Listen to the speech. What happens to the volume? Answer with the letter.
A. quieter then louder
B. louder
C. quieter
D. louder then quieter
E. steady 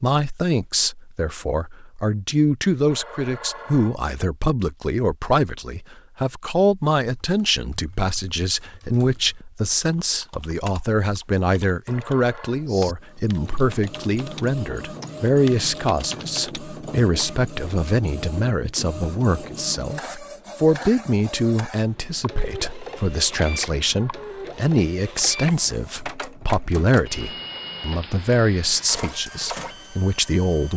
E.